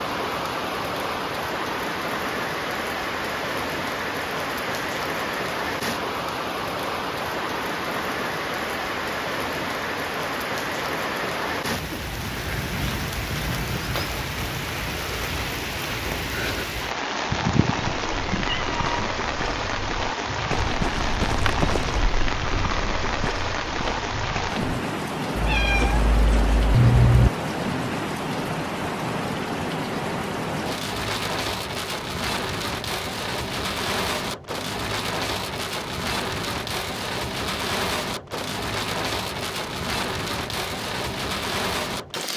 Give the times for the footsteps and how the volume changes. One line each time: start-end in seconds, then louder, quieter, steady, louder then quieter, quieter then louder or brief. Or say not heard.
17.9-24.7 louder then quieter.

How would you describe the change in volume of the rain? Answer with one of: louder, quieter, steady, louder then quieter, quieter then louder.
steady.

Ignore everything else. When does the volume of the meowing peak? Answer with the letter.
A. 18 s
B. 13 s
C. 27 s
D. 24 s
C.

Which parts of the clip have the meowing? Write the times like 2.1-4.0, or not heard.
17.3-19.1, 25.4-27.3.